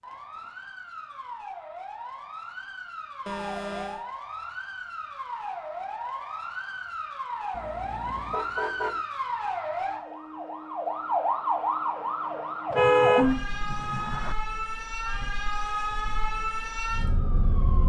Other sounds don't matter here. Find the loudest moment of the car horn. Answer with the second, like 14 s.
13 s.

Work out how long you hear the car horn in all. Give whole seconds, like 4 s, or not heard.
4 s.